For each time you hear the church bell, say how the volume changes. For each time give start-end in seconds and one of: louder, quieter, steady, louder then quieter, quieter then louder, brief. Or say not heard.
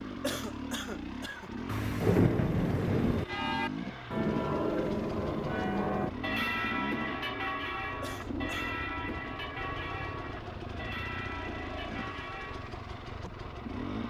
3.1-12.8 quieter.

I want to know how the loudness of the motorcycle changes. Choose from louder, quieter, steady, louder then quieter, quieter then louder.
steady.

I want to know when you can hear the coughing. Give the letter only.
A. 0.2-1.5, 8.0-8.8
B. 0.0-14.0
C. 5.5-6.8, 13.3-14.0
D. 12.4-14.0
A.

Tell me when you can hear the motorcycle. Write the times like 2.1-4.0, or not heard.
0.0-14.0.